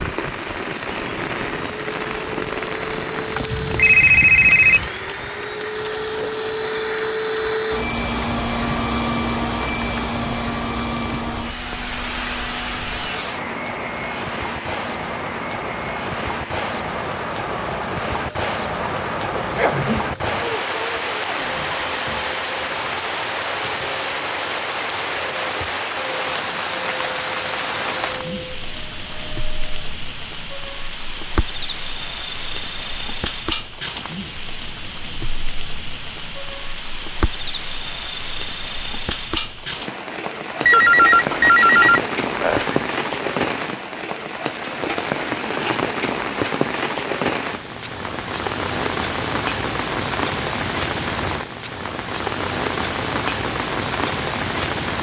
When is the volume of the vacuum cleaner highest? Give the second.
9 s.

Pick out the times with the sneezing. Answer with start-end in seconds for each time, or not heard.
19.4-20.1.